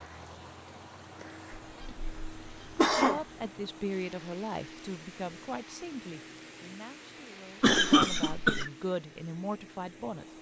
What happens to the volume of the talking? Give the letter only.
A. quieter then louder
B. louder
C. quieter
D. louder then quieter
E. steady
A.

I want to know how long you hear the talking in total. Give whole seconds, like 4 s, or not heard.
7 s.